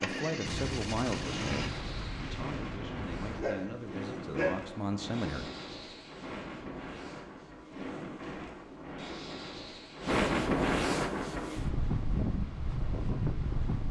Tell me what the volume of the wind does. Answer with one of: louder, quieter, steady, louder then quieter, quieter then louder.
louder.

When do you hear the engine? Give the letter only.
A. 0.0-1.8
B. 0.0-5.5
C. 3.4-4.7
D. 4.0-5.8
A.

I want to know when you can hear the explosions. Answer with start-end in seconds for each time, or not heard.
0.5-3.5.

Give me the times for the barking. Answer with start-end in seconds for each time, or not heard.
3.4-4.7.